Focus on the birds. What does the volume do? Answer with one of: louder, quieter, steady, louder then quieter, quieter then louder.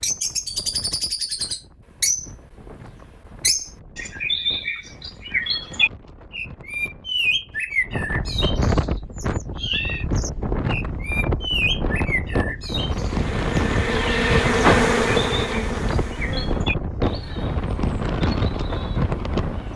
quieter.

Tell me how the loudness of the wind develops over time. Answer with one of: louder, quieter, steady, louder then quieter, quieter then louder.
louder.